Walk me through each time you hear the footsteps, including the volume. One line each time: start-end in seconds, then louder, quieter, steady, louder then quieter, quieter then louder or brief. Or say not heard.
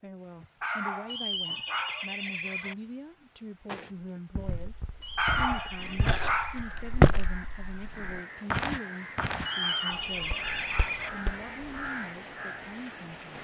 3.6-11.7 louder then quieter.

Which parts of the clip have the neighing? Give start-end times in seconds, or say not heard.
1.1-2.8, 5.0-6.7, 9.4-11.1.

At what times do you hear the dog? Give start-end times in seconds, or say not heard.
0.6-2.0, 5.2-6.6, 9.6-11.1.